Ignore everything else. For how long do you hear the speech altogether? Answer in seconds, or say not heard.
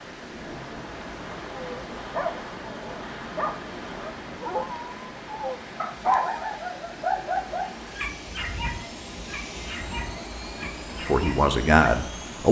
2 s.